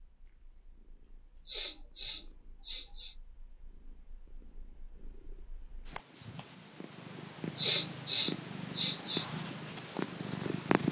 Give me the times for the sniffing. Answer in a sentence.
The sniffing can be heard from 1.4 to 3.1 s and from 7.2 to 9.2 s.